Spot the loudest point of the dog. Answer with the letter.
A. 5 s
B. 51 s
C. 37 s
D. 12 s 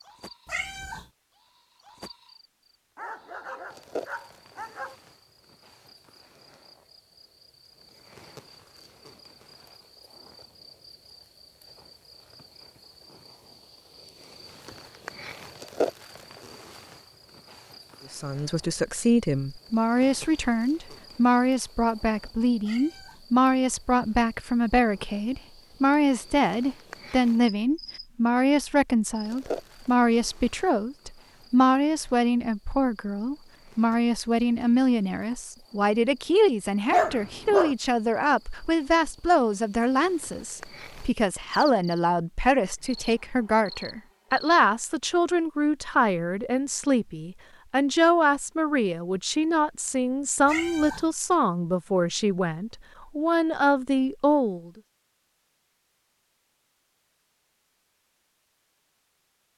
C.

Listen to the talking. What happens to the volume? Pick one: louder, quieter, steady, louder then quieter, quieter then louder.
steady.